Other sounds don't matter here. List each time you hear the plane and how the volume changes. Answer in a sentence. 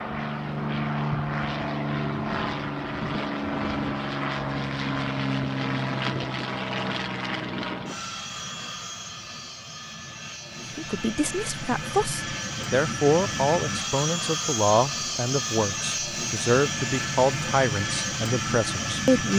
You can hear the plane from 0.0 to 19.3 s, getting quieter then louder.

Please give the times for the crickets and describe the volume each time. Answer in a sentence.
The crickets can't be heard in this clip.